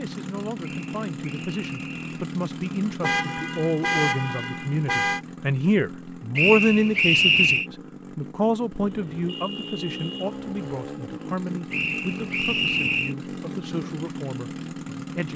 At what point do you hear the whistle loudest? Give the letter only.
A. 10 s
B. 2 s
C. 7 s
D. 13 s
C.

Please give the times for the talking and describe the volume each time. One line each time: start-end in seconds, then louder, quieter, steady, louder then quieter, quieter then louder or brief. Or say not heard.
0.0-15.3 louder then quieter.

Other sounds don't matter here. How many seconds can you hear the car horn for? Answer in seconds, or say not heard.
4 s.